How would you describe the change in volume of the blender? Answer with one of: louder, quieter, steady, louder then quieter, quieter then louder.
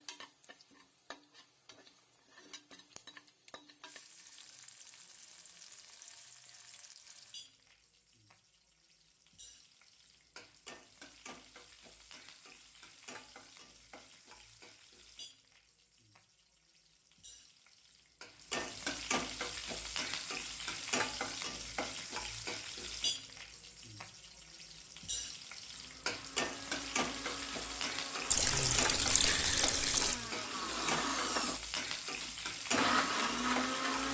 louder.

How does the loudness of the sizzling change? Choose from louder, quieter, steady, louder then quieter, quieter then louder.
louder.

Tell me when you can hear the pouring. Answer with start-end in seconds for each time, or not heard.
28.3-30.2.